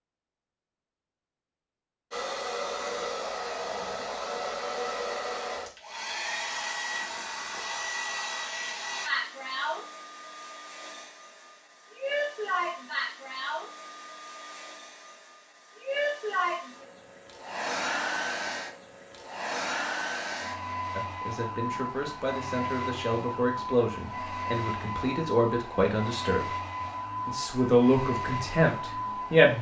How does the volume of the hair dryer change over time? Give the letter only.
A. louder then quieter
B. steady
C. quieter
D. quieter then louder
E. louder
B.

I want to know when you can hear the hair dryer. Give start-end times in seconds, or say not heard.
2.1-29.5.